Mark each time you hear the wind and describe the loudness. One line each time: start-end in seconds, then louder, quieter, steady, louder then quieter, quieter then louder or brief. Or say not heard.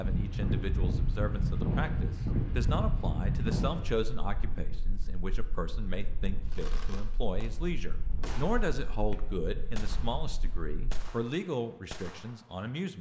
0.0-11.1 quieter.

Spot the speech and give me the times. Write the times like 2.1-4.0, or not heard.
0.0-12.9.